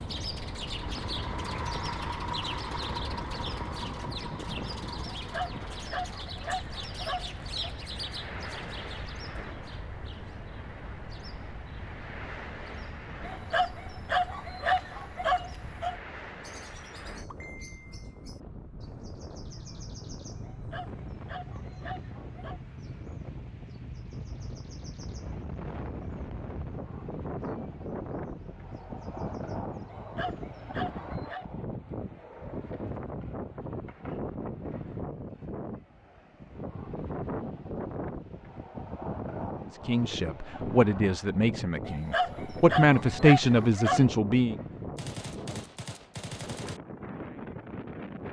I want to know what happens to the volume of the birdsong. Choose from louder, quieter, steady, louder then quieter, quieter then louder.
quieter.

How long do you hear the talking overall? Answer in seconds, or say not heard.
5 s.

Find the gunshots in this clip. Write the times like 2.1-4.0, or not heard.
45.0-46.8.